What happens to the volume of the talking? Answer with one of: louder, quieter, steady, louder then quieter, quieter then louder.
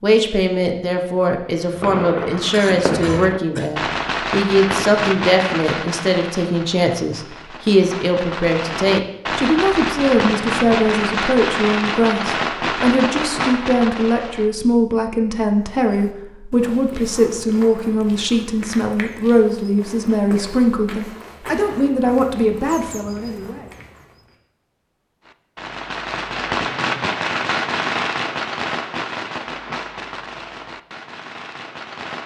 steady.